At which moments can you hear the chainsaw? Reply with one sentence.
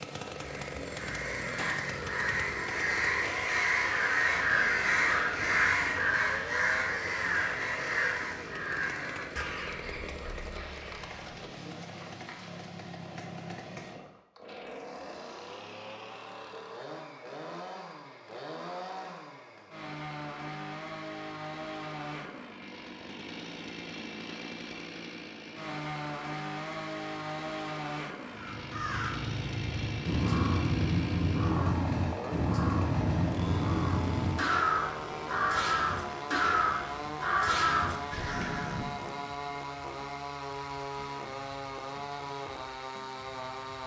You can hear the chainsaw from 0.0 to 43.8 s.